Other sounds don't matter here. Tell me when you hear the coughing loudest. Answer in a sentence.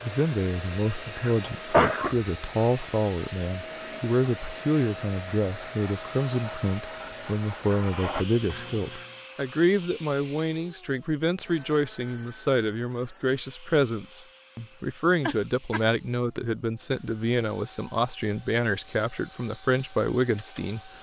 The volume of the coughing peaks at 2 seconds.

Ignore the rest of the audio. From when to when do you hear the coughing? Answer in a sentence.
The coughing can be heard from 1.1 to 2.1 s and from 15.2 to 15.8 s.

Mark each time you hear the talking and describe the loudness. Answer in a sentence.
The talking can be heard from 0.0 to 20.9 s, at a steady volume.